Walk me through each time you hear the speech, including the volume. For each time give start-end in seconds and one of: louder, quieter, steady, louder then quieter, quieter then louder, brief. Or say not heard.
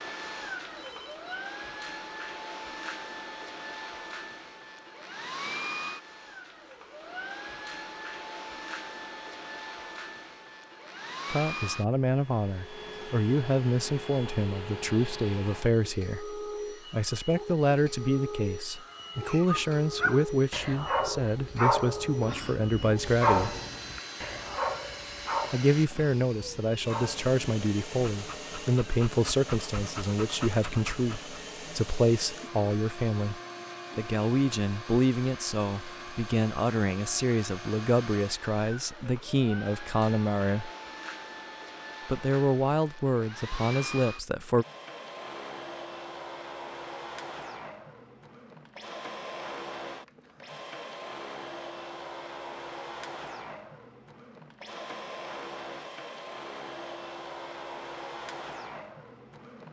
11.2-23.6 steady
25.5-40.7 steady
42.0-44.6 brief.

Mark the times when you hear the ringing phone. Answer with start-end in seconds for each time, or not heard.
0.8-1.4.